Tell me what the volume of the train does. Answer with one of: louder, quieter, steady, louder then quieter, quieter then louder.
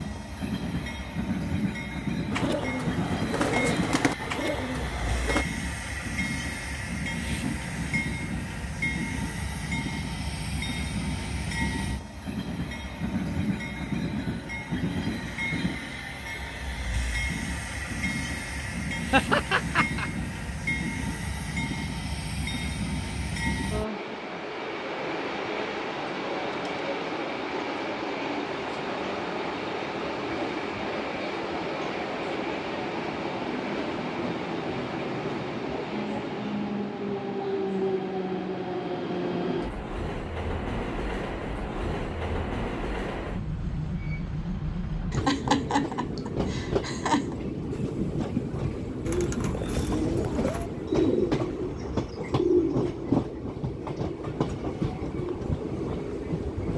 steady.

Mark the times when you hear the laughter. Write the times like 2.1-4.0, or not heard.
19.1-20.1, 45.1-47.4.